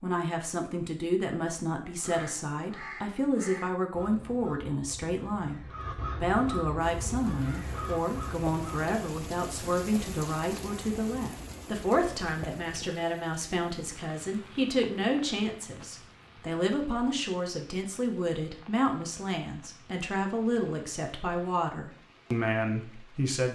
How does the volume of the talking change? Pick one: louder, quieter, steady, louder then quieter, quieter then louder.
steady.